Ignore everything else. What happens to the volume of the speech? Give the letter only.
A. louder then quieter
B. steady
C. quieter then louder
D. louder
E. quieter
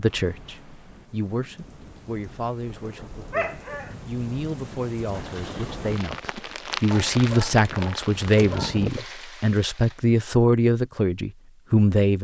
D.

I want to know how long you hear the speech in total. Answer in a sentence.
You can hear the speech for 12 seconds altogether.